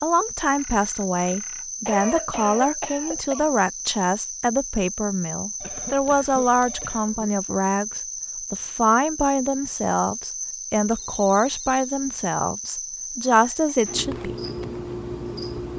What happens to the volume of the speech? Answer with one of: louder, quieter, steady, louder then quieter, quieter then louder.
steady.